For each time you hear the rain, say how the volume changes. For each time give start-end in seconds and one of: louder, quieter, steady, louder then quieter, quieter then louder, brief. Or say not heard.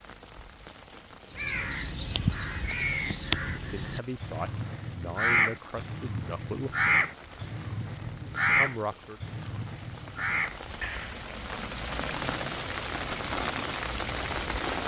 0.0-14.8 louder.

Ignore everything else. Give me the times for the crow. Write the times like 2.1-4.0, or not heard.
1.3-11.2.